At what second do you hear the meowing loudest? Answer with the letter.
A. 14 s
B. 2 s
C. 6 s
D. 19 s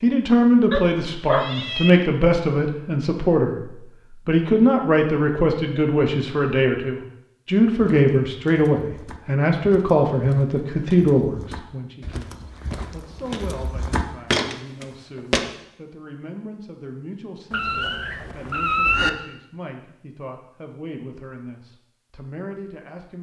D.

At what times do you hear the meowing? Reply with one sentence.
The meowing can be heard from 0.7 to 2.0 s and from 17.5 to 19.1 s.